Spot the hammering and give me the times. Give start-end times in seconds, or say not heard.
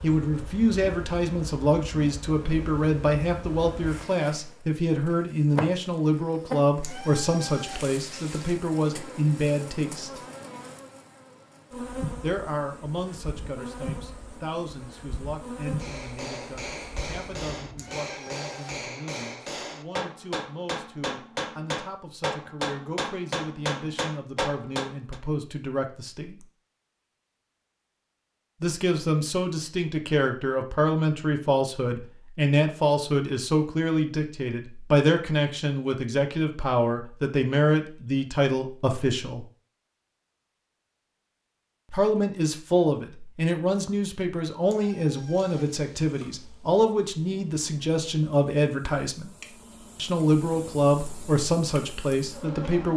15.8-25.2.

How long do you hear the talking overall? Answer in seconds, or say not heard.
46 s.